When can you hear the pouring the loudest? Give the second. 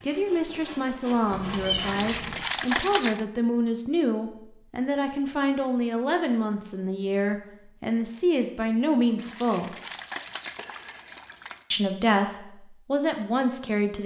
3 s.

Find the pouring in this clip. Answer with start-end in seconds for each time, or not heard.
1.8-3.2, 9.2-11.7.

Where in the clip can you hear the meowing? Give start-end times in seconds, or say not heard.
1.3-2.5.